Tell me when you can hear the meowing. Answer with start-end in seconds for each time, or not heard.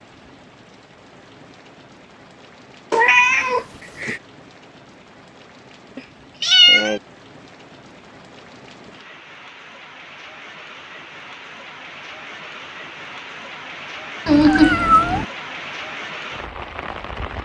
2.9-4.2, 6.0-7.0, 14.2-15.2.